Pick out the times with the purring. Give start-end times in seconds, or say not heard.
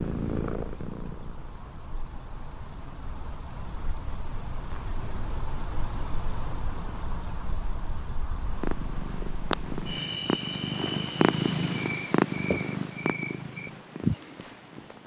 0.0-1.7, 8.3-15.0.